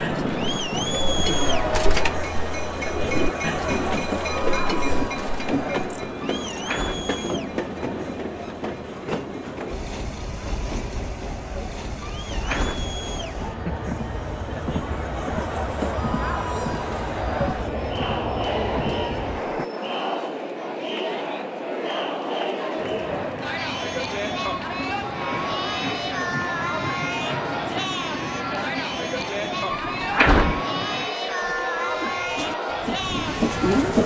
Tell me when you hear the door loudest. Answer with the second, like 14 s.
30 s.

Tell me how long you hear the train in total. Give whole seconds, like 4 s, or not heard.
31 s.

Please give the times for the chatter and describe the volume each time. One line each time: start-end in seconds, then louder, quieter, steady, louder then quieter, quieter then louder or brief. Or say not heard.
0.0-34.0 quieter then louder.